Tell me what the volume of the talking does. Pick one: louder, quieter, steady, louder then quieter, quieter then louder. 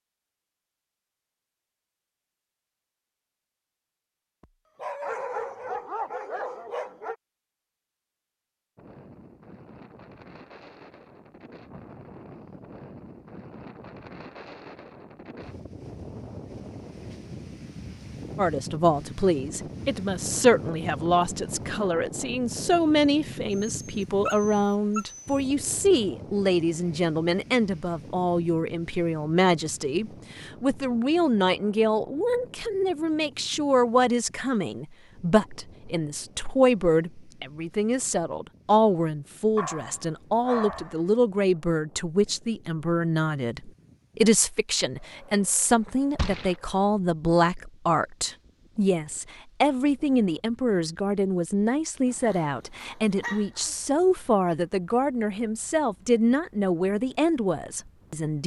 steady.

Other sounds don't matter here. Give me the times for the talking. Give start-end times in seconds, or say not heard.
18.4-58.4.